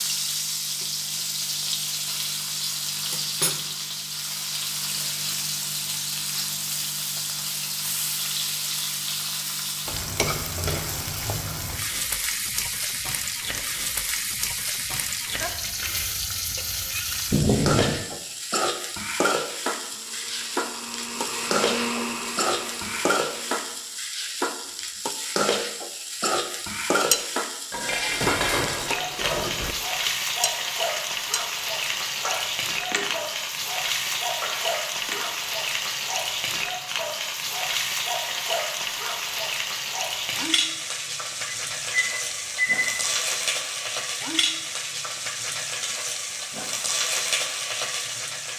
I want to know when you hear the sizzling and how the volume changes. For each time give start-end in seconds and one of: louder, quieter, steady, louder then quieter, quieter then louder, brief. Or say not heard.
0.0-48.5 steady.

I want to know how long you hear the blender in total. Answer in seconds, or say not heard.
4 s.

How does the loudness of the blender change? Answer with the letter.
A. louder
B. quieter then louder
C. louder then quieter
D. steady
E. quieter
C.